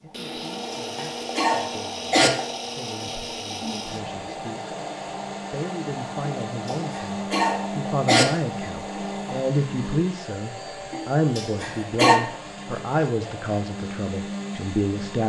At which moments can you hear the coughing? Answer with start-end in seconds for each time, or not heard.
0.3-2.3, 6.2-8.2, 10.9-12.2.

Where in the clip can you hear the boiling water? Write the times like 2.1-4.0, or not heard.
0.0-9.4.